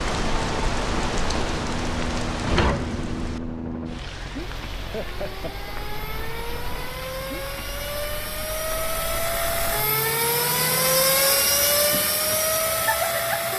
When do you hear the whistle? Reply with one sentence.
The whistle can't be heard in this clip.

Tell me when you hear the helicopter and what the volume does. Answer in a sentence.
You can hear the helicopter from 0.1 to 13.5 s, getting louder.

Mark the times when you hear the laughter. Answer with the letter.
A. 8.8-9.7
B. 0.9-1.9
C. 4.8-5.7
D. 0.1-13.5
C.